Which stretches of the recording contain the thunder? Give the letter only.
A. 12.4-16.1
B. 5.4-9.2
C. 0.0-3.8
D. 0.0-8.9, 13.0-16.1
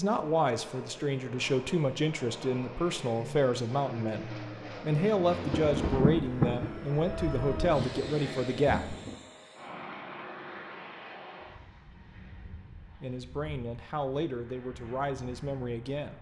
B.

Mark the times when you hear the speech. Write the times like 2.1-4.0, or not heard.
0.0-8.9, 13.0-16.1.